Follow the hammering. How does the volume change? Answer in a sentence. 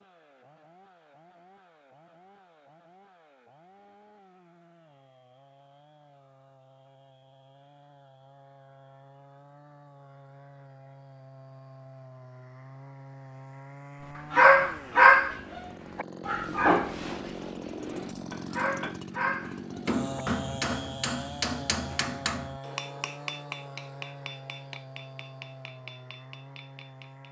The loudness of the hammering goes down.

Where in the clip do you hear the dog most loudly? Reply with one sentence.
The volume of the dog peaks at 15 seconds.